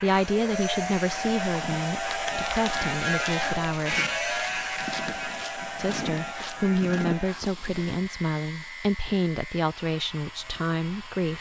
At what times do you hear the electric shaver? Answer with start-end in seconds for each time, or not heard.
0.0-11.3.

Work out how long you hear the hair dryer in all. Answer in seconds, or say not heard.
11 s.